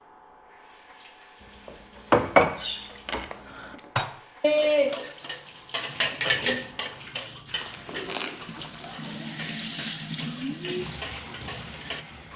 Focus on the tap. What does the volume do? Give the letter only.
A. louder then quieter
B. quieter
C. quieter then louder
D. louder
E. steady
D.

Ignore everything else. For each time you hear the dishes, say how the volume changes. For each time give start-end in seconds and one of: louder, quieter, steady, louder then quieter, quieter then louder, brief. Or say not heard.
1.6-12.1 quieter.